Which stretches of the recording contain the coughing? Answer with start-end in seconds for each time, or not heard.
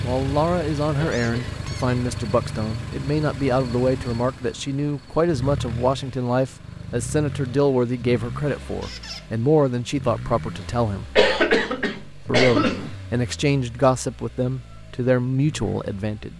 0.9-1.6, 11.2-12.9.